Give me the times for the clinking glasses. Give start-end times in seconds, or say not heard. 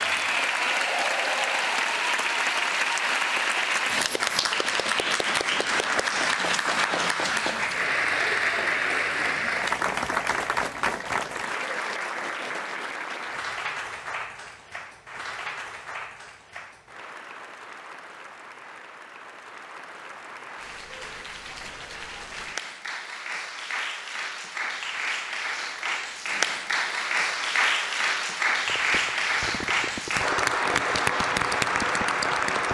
not heard.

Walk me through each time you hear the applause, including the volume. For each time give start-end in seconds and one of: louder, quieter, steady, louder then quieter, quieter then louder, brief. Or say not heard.
0.0-32.7 quieter then louder.